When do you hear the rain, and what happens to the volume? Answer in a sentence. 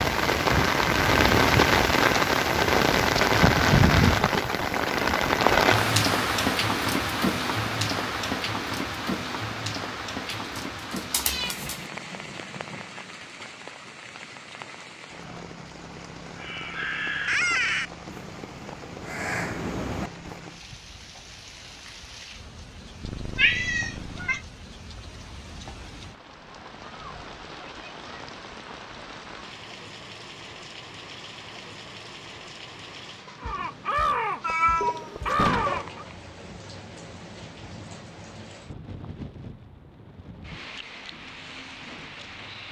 The rain can be heard from 0.0 to 42.6 s, getting quieter.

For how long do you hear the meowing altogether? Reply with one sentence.
You can hear the meowing for 4 seconds altogether.